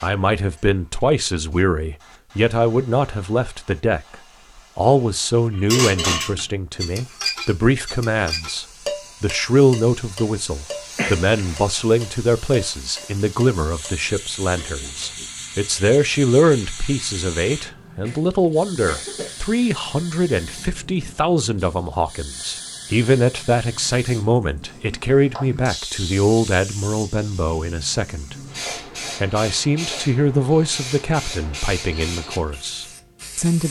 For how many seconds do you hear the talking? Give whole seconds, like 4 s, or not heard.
32 s.